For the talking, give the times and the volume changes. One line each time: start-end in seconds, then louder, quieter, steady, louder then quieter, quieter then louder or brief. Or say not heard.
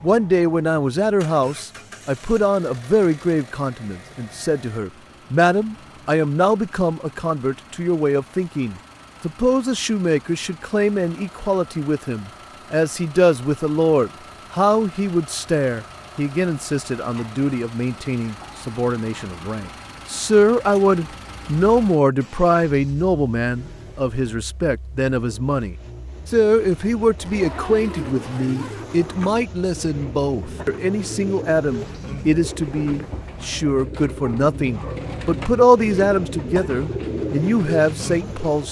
0.0-38.6 steady.